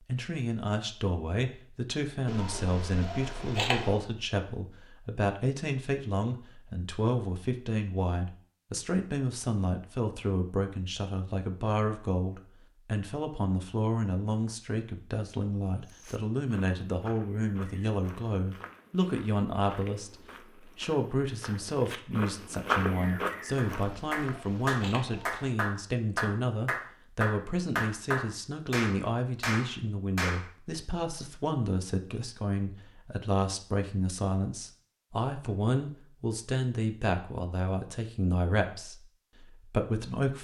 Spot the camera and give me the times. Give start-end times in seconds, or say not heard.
2.2-4.0, 23.8-25.6.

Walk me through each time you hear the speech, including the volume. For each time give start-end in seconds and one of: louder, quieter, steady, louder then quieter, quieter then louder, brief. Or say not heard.
0.1-40.4 steady.